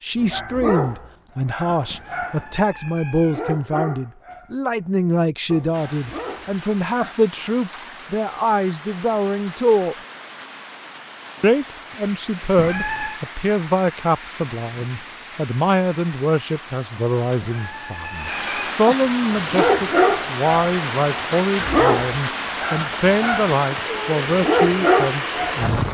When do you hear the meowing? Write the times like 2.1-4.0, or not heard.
1.9-3.5, 12.6-13.2, 17.4-18.8.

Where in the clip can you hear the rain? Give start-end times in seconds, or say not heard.
5.7-25.8.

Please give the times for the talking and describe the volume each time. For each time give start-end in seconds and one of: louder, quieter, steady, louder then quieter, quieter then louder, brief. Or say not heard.
0.0-9.9 steady
11.4-25.8 steady.